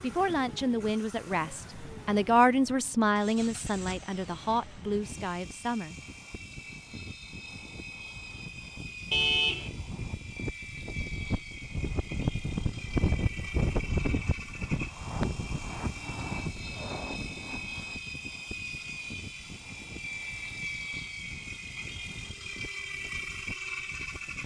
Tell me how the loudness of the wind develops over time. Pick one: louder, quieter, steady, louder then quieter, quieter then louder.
louder then quieter.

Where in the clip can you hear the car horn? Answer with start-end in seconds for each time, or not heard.
9.1-9.7.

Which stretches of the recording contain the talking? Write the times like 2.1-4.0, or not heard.
0.0-6.0.